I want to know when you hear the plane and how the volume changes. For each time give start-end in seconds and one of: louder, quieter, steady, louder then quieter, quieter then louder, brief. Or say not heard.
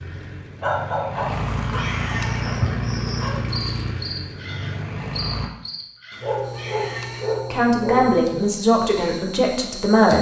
0.0-5.5 louder then quieter.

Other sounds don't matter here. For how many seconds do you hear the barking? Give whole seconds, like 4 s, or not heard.
5 s.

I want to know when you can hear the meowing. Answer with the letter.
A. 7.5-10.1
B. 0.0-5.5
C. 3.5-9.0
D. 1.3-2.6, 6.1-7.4
D.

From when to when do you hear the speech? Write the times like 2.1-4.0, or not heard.
7.5-10.1.